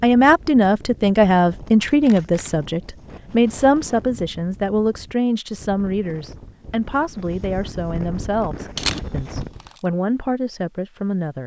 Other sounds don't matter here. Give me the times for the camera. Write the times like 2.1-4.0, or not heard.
1.8-2.6, 8.8-9.8.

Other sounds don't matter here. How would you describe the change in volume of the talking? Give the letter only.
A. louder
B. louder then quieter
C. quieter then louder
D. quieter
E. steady
D.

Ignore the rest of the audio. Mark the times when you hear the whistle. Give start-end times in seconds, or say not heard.
not heard.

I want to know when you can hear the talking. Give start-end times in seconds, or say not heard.
0.0-11.4.